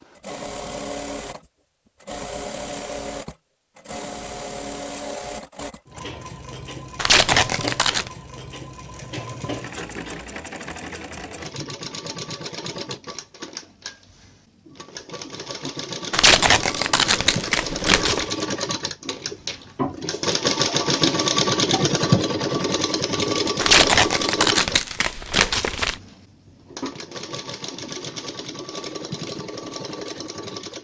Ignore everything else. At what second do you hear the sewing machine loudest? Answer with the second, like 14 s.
22 s.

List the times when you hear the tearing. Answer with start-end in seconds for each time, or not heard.
7.0-8.1, 16.1-18.2, 23.6-25.9.